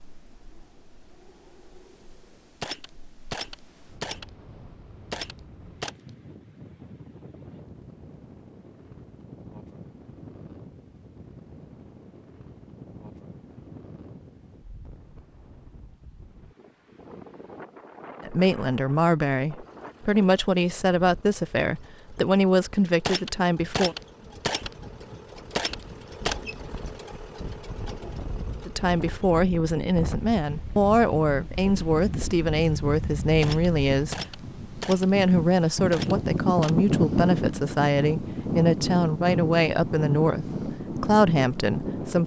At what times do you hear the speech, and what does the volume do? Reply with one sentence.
You can hear the speech from 18.2 to 23.9 s, at a steady volume; and from 28.6 to 42.2 s, at a steady volume.